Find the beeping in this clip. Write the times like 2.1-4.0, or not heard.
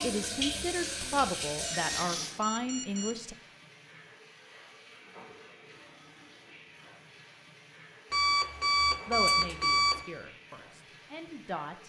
1.6-3.2, 8.1-10.1.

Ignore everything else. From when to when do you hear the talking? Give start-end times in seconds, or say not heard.
0.0-3.4, 9.1-11.8.